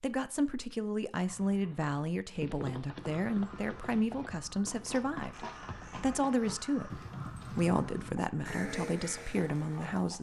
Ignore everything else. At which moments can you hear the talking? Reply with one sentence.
You can hear the talking from 0.0 to 10.1 s.